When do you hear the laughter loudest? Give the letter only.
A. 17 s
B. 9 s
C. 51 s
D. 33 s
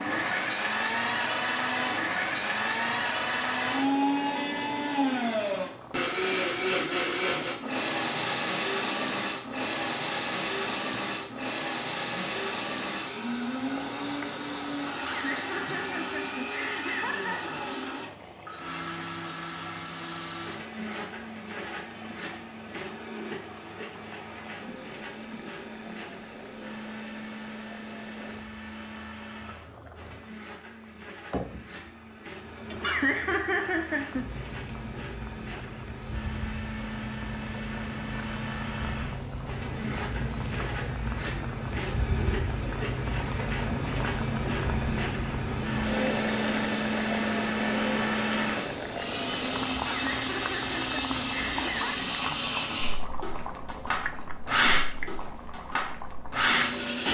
D.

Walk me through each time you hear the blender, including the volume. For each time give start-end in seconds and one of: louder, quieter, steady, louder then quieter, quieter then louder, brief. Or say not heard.
0.0-57.0 quieter then louder.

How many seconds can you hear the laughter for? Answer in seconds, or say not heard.
6 s.